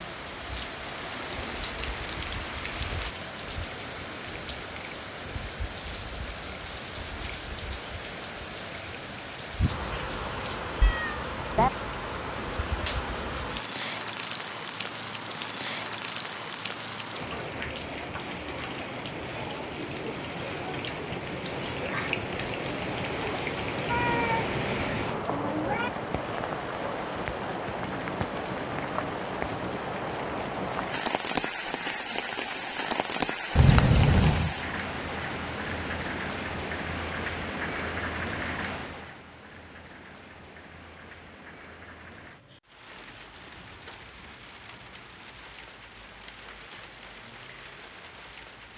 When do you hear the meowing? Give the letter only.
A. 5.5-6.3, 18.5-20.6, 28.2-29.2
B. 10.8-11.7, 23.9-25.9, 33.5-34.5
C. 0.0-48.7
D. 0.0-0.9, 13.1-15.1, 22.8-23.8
B.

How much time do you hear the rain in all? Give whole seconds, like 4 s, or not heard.
49 s.